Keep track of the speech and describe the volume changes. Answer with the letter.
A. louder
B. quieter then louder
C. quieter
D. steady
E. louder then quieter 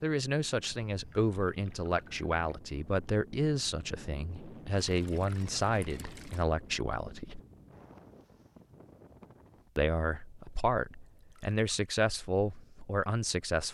D.